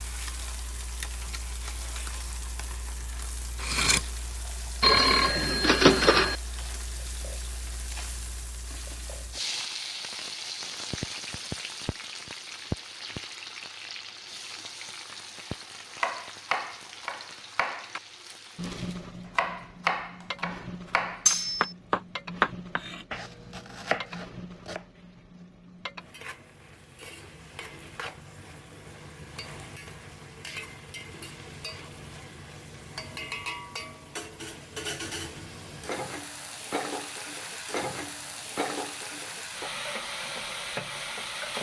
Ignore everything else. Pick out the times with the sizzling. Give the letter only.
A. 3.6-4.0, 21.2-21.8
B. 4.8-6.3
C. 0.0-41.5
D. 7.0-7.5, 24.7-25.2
C.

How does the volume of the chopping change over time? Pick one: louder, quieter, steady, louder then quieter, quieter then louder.
louder then quieter.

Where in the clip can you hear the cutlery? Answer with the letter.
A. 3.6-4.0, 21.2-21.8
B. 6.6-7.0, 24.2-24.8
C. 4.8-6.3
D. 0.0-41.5
A.